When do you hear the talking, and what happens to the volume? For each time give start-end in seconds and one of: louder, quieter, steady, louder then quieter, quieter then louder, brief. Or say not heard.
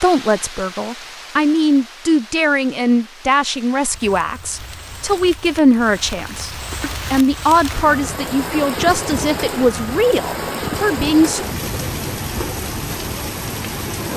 0.0-11.4 steady.